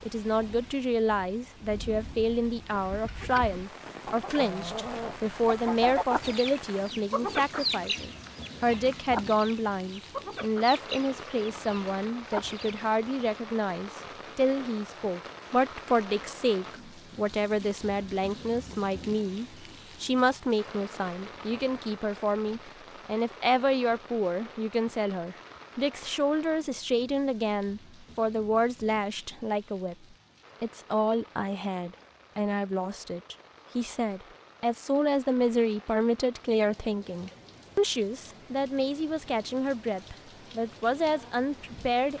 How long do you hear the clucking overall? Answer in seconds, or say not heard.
10 s.